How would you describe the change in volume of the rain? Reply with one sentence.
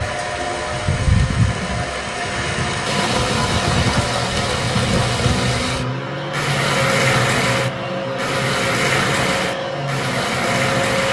The volume of the rain stays about the same.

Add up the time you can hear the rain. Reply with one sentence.
You can hear the rain for 11 seconds altogether.